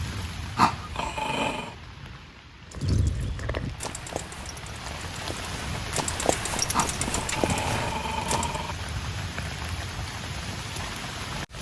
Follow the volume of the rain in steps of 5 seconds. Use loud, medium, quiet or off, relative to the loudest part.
medium, loud, loud.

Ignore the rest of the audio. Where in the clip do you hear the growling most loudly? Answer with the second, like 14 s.
1 s.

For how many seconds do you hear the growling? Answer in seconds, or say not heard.
3 s.